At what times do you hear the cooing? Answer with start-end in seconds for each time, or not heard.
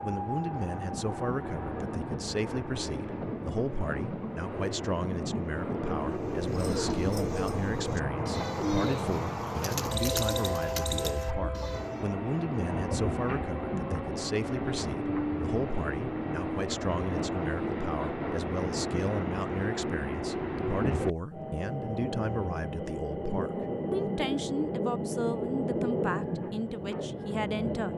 6.0-12.1.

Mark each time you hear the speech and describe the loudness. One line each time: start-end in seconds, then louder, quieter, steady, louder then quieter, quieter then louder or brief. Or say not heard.
0.0-27.9 steady.